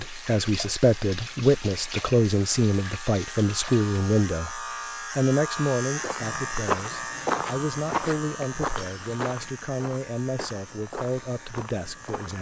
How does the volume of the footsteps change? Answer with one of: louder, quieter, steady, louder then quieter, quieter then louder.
quieter.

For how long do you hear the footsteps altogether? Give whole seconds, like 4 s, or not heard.
6 s.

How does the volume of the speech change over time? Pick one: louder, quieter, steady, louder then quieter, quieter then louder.
quieter.